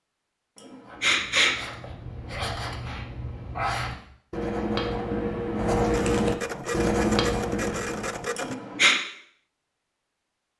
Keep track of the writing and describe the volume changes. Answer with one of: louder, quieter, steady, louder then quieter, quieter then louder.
louder.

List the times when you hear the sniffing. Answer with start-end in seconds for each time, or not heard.
0.6-1.6, 8.3-8.9.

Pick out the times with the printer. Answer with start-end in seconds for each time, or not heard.
5.8-8.6.